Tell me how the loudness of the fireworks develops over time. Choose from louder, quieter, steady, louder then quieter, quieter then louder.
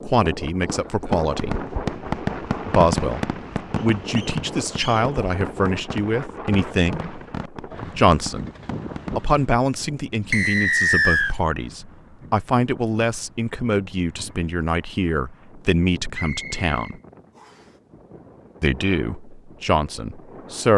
quieter.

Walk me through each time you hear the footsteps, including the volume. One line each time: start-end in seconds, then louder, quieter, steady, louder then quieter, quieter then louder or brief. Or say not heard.
not heard.